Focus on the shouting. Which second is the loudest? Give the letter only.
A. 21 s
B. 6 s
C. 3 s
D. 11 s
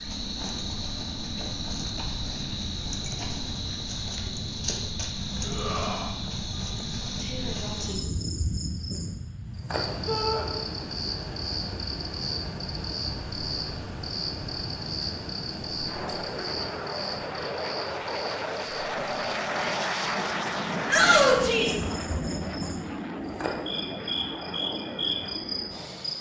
A.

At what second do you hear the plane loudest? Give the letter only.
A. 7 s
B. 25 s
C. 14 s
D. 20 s
D.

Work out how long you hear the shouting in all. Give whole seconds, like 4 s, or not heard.
2 s.